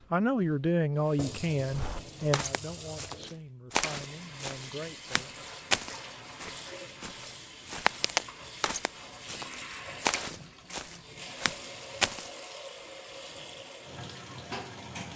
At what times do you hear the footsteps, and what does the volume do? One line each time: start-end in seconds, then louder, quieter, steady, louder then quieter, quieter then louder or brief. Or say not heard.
1.7-12.3 steady.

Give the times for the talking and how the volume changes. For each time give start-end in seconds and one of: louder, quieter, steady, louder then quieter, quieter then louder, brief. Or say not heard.
0.1-5.3 quieter.